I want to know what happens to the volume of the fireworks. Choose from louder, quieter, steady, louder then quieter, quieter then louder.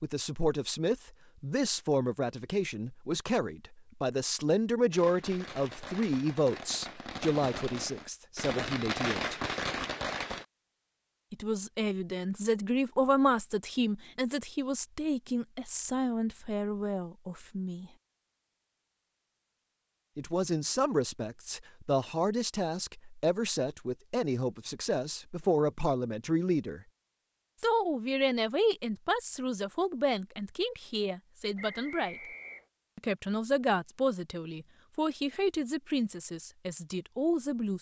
louder.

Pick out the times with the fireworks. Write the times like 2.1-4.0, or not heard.
4.9-10.4.